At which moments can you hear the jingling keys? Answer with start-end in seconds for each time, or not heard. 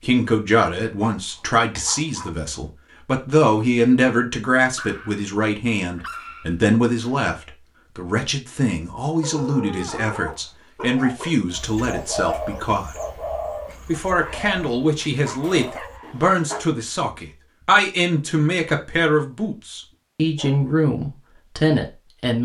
not heard.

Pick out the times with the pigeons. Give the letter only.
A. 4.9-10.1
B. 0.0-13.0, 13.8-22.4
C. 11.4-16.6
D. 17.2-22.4
C.